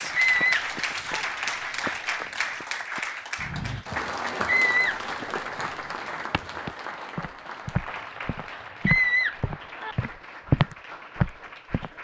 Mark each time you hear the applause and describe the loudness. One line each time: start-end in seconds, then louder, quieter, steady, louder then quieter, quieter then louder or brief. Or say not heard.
0.0-12.0 quieter.